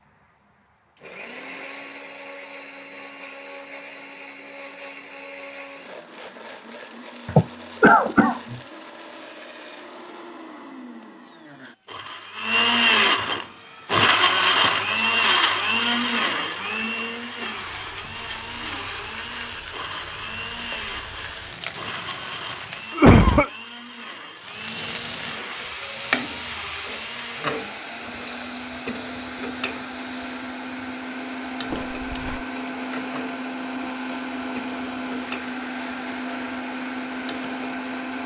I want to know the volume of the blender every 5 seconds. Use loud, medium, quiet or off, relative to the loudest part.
quiet, quiet, loud, loud, quiet, quiet, medium, medium.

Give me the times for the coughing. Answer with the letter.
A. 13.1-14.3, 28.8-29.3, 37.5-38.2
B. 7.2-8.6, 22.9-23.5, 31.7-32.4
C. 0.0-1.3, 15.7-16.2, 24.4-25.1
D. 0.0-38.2
B.